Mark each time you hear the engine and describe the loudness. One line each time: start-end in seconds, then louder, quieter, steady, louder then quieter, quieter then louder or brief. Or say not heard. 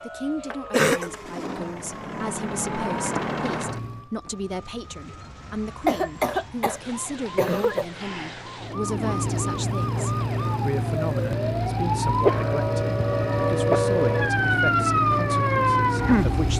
0.0-4.1 louder
8.6-16.5 steady.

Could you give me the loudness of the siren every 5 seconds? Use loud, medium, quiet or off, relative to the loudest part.
quiet, quiet, loud, loud.